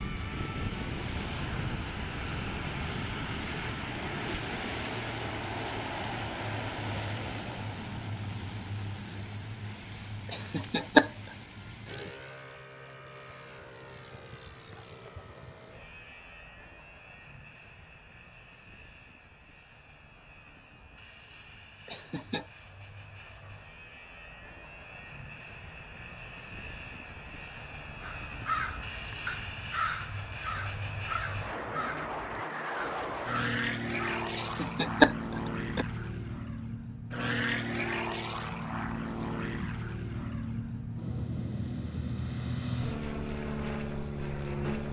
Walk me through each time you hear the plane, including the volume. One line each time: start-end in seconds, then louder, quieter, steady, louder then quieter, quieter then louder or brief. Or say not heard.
0.0-44.8 quieter then louder.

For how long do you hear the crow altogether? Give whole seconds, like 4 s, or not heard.
6 s.